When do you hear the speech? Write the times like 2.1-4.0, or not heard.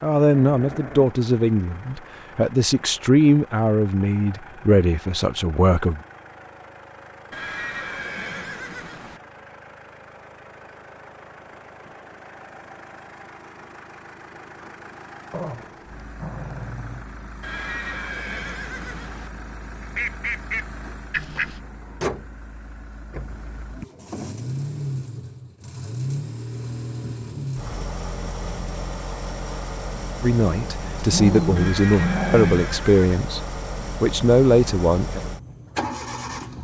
0.0-6.0, 30.2-33.4, 34.0-35.2.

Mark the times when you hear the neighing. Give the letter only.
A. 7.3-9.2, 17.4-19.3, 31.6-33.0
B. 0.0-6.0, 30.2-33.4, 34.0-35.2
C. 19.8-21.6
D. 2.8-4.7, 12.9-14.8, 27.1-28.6
A.